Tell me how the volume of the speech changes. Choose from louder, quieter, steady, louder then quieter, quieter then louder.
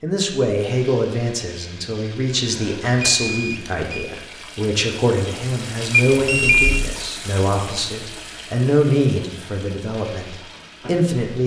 steady.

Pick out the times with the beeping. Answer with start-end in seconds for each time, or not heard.
2.5-4.1, 6.1-6.9.